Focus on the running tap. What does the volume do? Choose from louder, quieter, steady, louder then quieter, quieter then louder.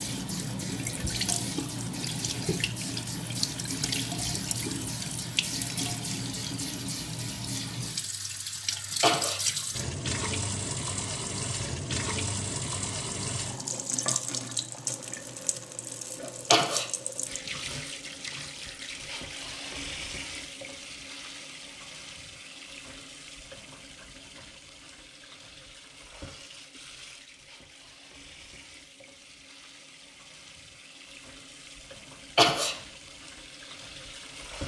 quieter.